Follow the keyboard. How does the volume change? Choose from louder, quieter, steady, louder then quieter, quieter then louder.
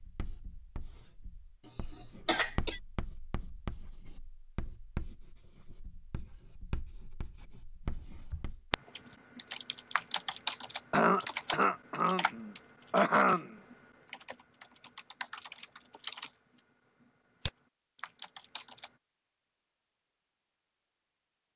quieter.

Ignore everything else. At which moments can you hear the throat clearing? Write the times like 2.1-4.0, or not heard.
1.6-2.8, 10.9-13.6.